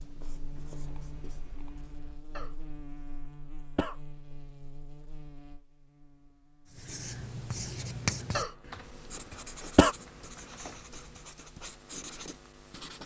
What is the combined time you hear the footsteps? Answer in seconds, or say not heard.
not heard.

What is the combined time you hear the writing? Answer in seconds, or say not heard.
8 s.